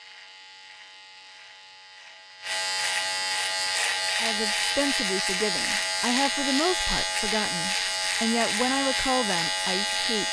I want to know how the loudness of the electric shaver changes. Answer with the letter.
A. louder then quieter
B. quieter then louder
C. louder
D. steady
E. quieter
C.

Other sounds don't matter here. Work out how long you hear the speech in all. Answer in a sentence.
The speech can be heard for 6 seconds in total.